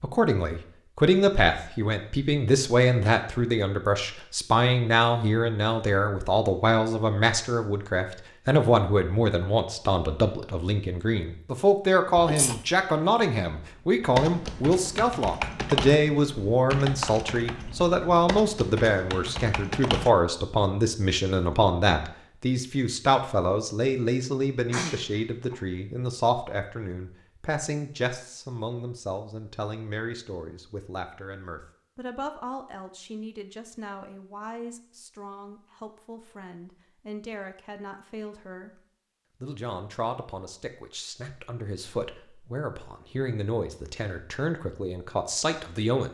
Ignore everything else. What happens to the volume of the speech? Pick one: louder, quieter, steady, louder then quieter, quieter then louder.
quieter.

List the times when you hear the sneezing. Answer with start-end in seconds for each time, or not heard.
12.2-12.6, 24.7-25.6.